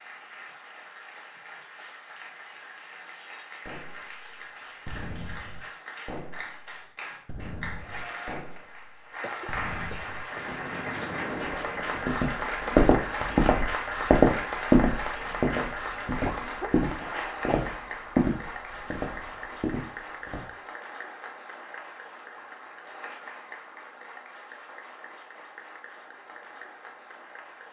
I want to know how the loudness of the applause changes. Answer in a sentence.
The loudness of the applause goes up, then down.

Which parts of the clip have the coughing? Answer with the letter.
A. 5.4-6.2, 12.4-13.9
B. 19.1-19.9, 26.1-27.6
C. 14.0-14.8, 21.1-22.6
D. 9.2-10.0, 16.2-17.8
D.